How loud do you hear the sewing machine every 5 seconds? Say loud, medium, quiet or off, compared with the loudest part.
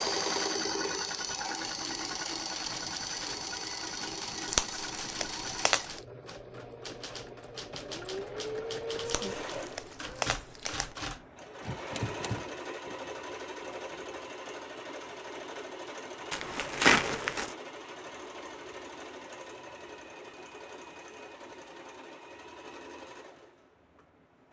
loud, medium, medium, medium, quiet.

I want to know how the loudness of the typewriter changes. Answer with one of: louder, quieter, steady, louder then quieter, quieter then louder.
louder.